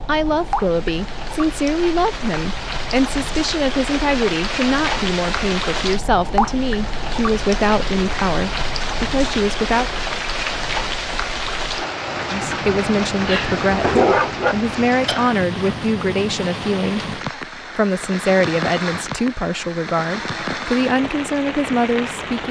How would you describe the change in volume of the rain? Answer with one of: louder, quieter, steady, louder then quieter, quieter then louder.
steady.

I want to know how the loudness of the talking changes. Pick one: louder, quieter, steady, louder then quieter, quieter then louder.
steady.